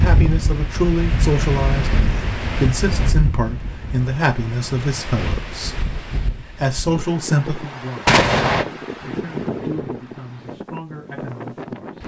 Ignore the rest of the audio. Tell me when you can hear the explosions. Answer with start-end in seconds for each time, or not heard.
8.1-8.7.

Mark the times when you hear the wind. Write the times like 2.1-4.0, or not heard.
0.0-12.0.